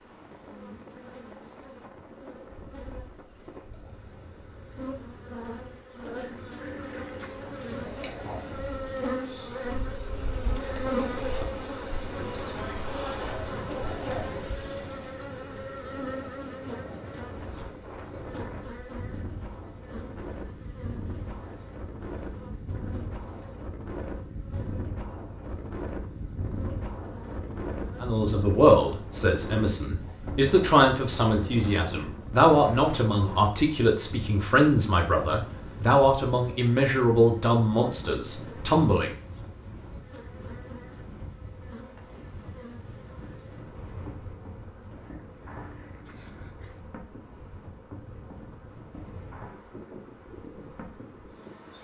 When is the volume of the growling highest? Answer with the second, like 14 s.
7 s.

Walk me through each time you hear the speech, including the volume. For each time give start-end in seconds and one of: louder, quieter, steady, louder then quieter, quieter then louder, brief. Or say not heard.
28.0-39.1 steady.